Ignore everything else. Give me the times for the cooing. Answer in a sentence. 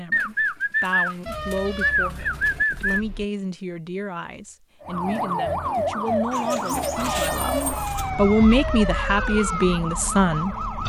The cooing can be heard from 0.1 to 3.0 s and from 6.3 to 8.1 s.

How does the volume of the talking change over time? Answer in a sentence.
The loudness of the talking goes up.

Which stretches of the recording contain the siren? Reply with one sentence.
You can hear the siren from 4.8 to 10.8 s.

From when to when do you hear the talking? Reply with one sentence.
You can hear the talking from 0.0 to 10.7 s.